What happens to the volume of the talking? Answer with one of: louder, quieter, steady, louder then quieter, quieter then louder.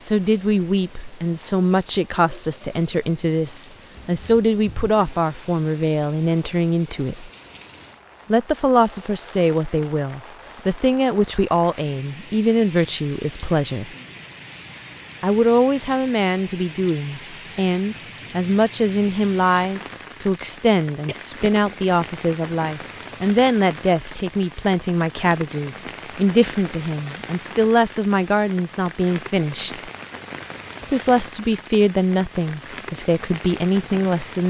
steady.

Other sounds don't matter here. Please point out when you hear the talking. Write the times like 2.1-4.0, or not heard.
0.0-7.3, 8.3-13.9, 15.2-29.9, 30.9-34.4.